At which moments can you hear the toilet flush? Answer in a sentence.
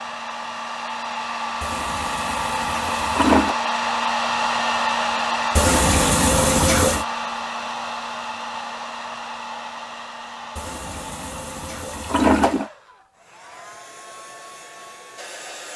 You can hear the toilet flush from 1.6 to 3.5 s, from 5.5 to 7.0 s and from 10.6 to 12.7 s.